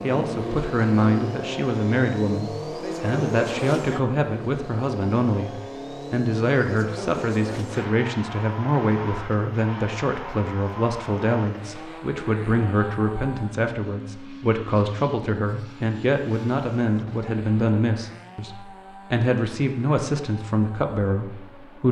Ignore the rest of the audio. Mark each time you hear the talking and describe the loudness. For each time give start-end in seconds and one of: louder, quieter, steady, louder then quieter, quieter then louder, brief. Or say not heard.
0.0-21.8 steady.